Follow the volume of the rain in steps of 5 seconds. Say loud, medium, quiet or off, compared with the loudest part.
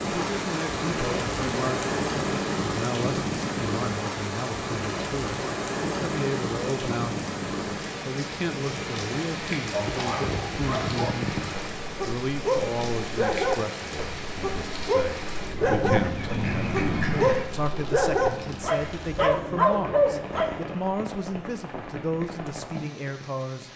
loud, loud, medium, medium, medium.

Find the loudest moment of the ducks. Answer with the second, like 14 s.
17 s.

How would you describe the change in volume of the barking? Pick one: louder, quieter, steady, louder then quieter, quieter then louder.
louder.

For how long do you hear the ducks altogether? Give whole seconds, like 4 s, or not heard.
2 s.